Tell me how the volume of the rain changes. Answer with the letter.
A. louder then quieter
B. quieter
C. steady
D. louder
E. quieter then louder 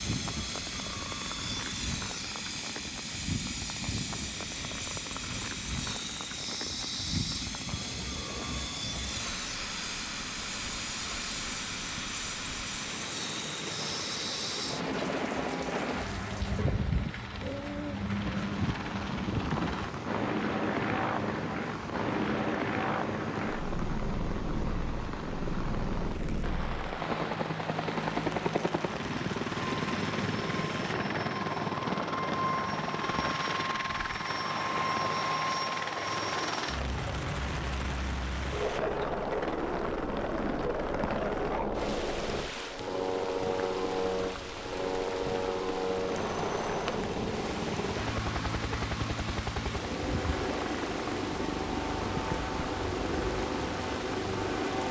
C.